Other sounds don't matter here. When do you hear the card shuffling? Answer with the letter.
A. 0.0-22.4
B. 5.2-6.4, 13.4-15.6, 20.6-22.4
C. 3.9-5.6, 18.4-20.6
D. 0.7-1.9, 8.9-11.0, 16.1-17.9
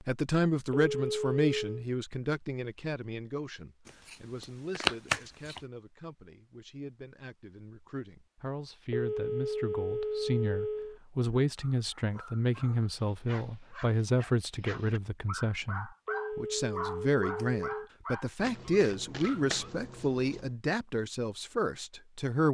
C.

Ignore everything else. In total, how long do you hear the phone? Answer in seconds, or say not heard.
5 s.